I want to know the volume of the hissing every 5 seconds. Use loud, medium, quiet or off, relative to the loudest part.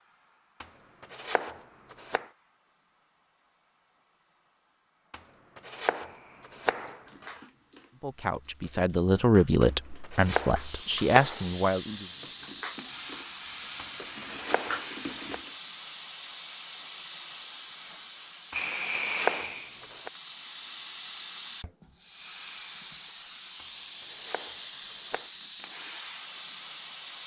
quiet, quiet, loud, loud, loud, loud.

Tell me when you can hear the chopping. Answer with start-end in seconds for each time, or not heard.
0.6-2.2, 5.1-7.4, 9.6-11.4, 13.8-15.3, 18.5-20.1, 23.6-25.3.